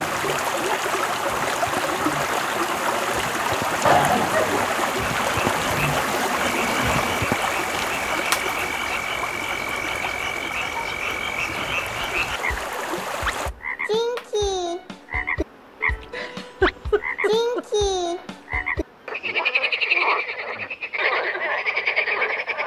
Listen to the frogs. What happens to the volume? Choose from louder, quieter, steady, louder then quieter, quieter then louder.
louder.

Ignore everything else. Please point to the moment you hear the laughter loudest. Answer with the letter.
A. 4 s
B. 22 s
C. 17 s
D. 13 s
A.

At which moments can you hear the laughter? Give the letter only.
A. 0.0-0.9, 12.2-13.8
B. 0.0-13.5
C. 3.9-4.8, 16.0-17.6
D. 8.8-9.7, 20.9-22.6
C.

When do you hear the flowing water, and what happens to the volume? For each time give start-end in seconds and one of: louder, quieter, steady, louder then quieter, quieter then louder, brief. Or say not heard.
0.0-13.5 quieter.